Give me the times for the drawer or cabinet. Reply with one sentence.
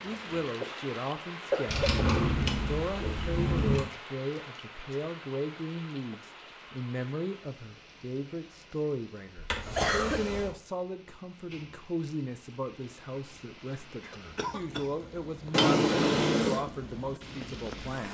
You can hear the drawer or cabinet from 1.6 to 3.9 s, from 9.3 to 10.6 s and from 15.5 to 16.6 s.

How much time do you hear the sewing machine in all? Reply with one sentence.
The sewing machine can't be heard in this clip.